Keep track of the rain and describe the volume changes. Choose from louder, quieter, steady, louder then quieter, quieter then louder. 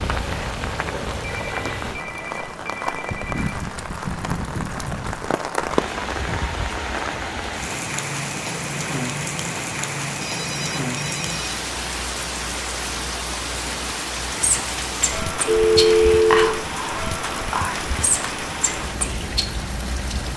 steady.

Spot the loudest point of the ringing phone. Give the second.
16 s.